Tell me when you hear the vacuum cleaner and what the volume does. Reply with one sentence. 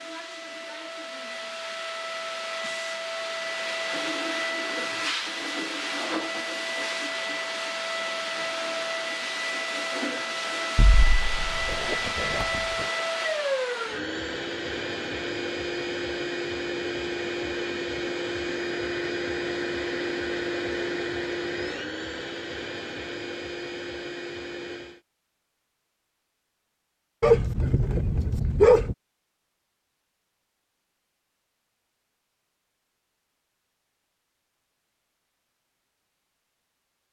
The vacuum cleaner can be heard from 0.0 to 25.0 s, at a steady volume.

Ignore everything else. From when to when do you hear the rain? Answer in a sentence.
You can't hear the rain here.